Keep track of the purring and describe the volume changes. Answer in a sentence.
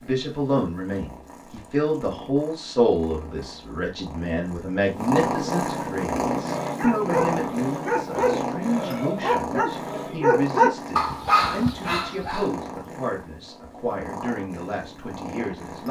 The volume of the purring goes up, then down.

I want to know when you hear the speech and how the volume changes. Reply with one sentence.
The speech can be heard from 0.0 to 15.8 s, getting quieter.